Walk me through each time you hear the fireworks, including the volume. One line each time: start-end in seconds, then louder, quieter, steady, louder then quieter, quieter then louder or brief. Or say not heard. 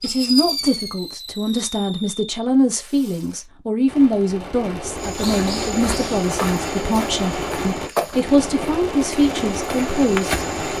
0.0-10.7 quieter then louder.